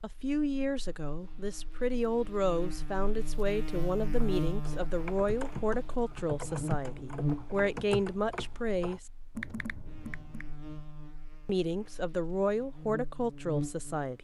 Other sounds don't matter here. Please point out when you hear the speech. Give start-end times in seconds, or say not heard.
0.0-9.1, 11.4-14.2.